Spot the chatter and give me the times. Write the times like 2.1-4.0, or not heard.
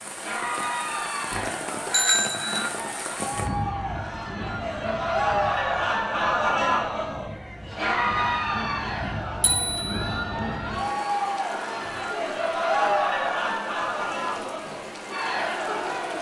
0.1-16.1.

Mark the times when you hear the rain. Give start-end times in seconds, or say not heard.
0.0-16.1.